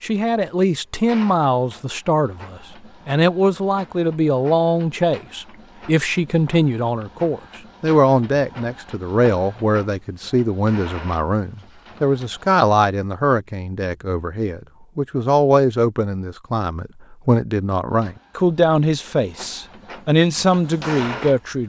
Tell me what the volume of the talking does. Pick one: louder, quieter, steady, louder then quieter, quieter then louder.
steady.